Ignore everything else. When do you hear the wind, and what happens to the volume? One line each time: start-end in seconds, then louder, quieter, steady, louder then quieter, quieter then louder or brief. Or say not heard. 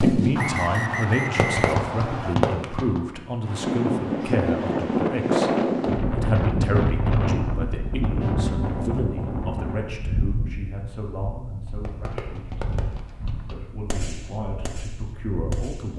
3.4-15.7 quieter.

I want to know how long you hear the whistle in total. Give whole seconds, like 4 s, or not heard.
2 s.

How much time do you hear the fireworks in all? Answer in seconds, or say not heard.
7 s.